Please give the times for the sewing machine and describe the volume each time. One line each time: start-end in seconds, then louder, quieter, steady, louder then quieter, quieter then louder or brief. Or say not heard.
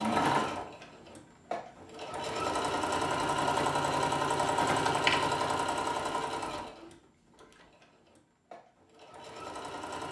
0.0-10.0 louder then quieter.